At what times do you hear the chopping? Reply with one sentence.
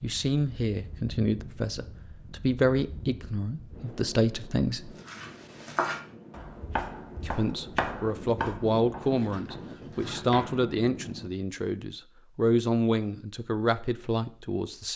You can hear the chopping from 5.0 to 10.6 s.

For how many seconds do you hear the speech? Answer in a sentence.
The speech can be heard for 13 seconds in total.